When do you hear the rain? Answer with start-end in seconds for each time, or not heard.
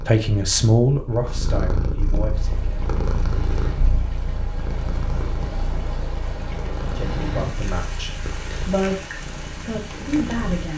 2.3-10.7.